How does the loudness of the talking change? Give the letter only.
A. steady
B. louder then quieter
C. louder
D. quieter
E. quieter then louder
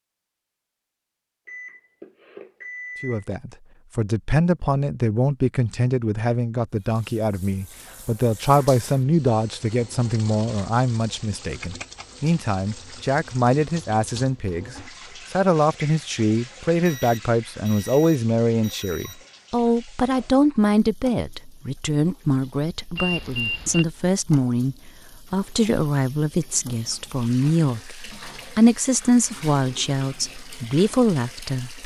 A.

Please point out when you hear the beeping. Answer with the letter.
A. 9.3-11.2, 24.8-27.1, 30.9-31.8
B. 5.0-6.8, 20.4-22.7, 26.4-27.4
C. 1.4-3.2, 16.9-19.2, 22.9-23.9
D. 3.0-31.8
C.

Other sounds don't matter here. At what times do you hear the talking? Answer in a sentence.
The talking can be heard from 3.0 to 31.8 s.